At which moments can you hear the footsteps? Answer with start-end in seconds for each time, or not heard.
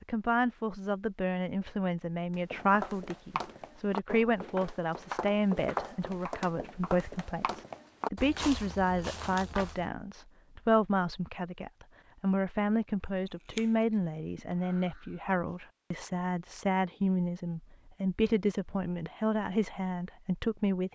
2.3-9.9.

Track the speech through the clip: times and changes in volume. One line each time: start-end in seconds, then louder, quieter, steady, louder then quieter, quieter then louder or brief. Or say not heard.
0.0-20.8 steady.